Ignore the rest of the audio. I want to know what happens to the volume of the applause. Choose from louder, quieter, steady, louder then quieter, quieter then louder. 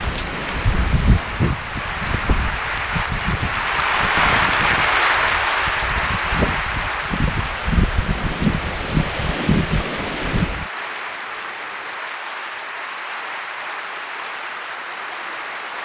louder then quieter.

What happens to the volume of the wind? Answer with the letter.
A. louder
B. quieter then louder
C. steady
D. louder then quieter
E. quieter
B.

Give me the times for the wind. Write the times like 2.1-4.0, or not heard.
0.0-10.7.